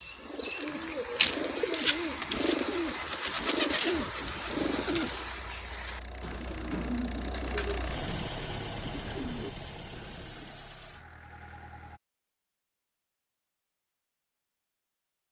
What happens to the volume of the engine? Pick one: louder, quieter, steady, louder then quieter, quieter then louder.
louder then quieter.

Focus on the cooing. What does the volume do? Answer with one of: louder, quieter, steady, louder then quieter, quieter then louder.
quieter.